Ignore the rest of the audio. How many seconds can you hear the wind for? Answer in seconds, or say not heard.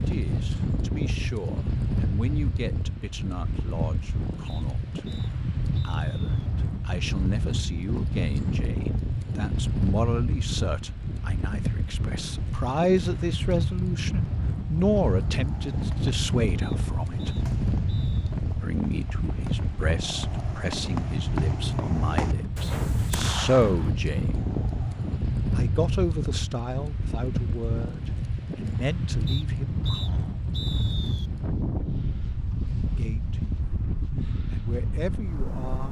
36 s.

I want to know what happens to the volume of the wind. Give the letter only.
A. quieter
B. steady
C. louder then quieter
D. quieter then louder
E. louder
B.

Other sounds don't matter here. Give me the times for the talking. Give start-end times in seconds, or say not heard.
0.1-5.2, 5.8-17.4, 18.6-24.4, 25.6-30.4, 32.8-33.6, 34.5-35.8.